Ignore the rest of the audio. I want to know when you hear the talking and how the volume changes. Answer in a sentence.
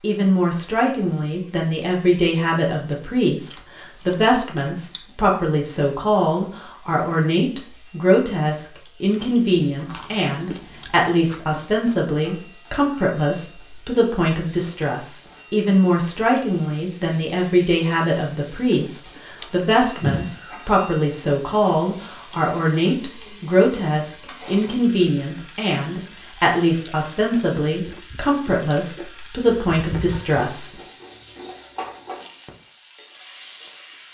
The talking can be heard from 0.0 to 30.8 s, at a steady volume.